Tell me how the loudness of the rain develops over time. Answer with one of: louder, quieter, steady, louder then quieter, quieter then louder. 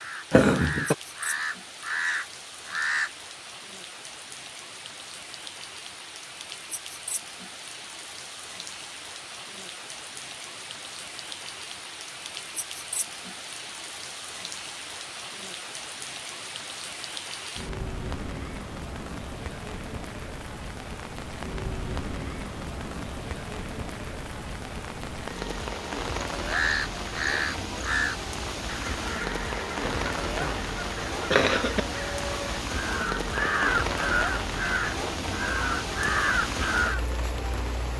louder.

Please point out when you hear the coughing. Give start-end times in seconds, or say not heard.
0.3-0.9, 29.8-31.8.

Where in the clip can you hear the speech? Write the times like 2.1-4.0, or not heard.
not heard.